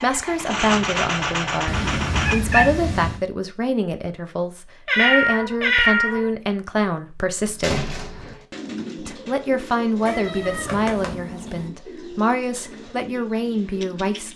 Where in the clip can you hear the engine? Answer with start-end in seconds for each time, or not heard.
0.0-2.4.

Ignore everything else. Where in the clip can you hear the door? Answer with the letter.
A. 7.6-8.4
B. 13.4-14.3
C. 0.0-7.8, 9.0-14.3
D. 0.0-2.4
A.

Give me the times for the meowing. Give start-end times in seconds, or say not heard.
1.6-3.2, 4.8-6.2, 10.1-11.7.